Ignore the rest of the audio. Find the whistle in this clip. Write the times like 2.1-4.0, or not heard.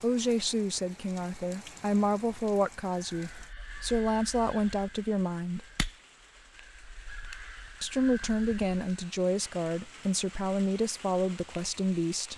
not heard.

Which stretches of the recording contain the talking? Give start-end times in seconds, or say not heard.
0.0-5.7, 7.8-12.3.